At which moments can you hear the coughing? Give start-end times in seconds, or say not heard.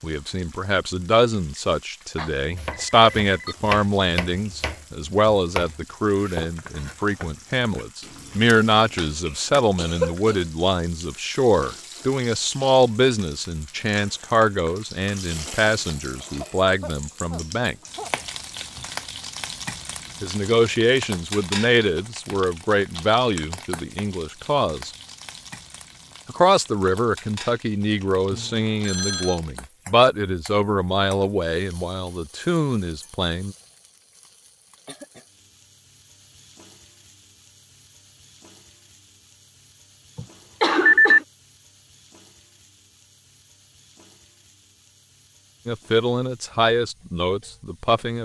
9.8-10.4, 16.1-18.1, 40.1-41.2.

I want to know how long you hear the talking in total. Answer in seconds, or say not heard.
32 s.